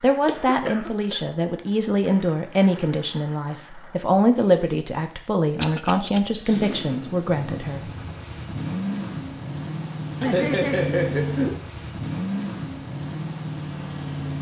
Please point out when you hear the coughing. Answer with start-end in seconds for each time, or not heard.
0.2-1.2, 5.5-6.2, 10.2-11.6.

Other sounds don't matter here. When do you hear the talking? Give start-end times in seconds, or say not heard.
0.0-7.8.